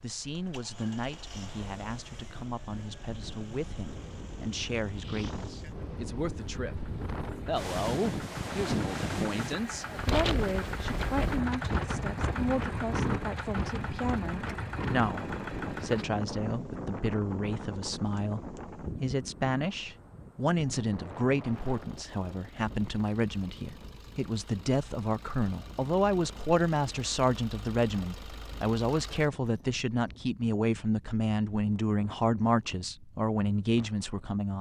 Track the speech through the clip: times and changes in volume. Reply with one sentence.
You can hear the speech from 0.0 to 34.5 s, getting louder.